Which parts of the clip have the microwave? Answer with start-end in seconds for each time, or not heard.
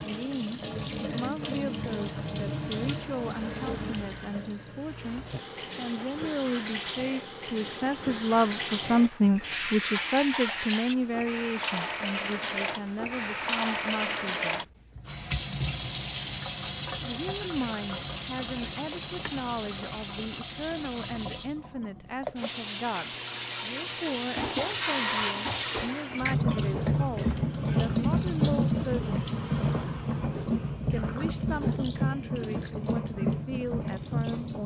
not heard.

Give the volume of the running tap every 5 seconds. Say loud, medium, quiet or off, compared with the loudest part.
medium, medium, loud, loud, medium, loud, loud.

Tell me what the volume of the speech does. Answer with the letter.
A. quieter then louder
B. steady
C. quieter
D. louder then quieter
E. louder
D.